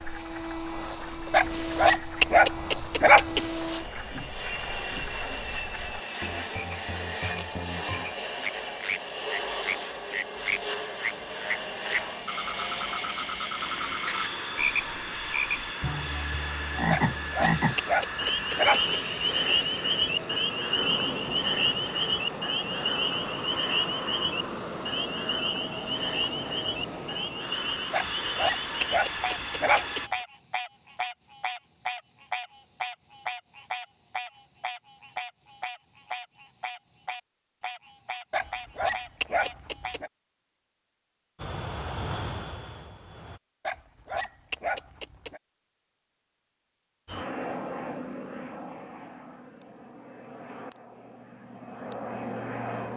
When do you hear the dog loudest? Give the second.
3 s.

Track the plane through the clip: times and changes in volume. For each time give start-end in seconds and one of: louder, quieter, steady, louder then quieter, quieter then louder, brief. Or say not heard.
0.0-30.1 steady
41.4-43.4 brief
47.0-52.9 quieter then louder.